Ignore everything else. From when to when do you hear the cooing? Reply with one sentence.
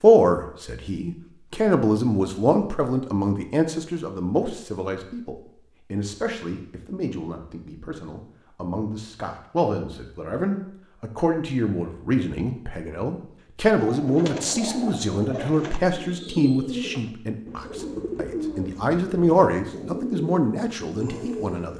You can hear the cooing from 13.8 to 21.7 s.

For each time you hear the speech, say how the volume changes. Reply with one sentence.
The speech can be heard from 0.0 to 21.7 s, getting quieter then louder.